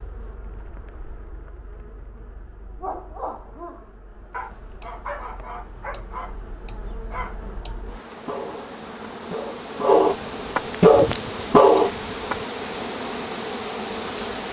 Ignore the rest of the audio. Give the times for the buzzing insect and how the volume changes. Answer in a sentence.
You can hear the buzzing insect from 0.0 to 14.4 s, getting louder.